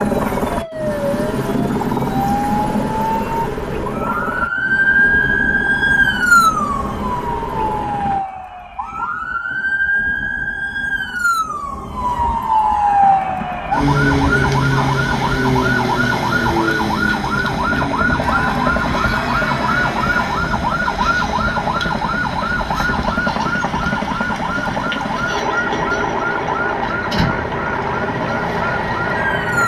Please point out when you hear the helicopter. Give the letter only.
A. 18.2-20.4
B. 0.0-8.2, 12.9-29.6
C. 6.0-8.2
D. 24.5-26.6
B.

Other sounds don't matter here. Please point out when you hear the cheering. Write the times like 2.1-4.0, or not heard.
18.2-20.4.